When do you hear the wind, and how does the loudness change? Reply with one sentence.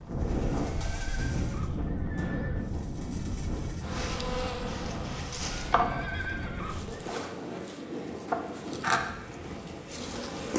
The wind can be heard from 0.0 to 10.5 s, getting quieter.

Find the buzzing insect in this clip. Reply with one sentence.
You can hear the buzzing insect from 0.1 to 10.5 s.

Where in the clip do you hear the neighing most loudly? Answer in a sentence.
The loudest moment of the neighing is at 6 seconds.